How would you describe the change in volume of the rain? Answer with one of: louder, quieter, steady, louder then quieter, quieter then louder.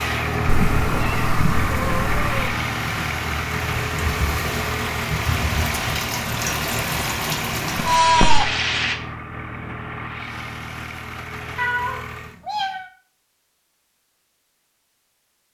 louder.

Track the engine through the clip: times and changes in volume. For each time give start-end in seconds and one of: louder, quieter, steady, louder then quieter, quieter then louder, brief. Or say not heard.
0.0-12.4 quieter.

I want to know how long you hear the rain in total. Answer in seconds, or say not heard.
9 s.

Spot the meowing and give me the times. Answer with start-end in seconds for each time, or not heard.
0.5-2.5, 8.0-8.4, 11.6-12.9.